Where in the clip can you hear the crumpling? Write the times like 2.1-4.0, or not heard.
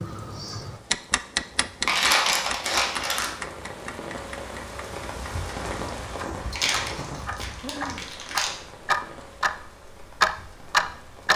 1.9-3.3, 6.5-8.5.